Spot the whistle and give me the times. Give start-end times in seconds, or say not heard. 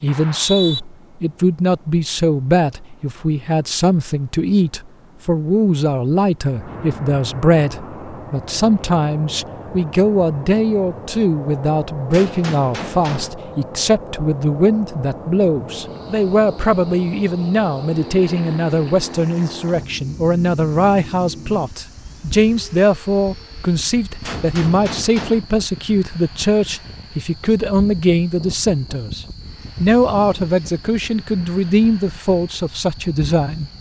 0.1-0.8.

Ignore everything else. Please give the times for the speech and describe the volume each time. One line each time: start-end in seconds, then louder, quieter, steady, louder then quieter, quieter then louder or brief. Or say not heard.
0.0-33.7 steady.